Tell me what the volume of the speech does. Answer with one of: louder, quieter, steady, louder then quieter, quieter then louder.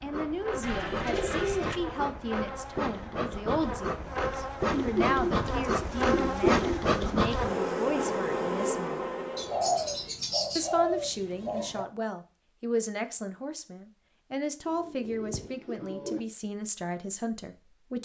steady.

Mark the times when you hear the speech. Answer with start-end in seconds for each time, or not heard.
0.0-9.1, 10.6-18.0.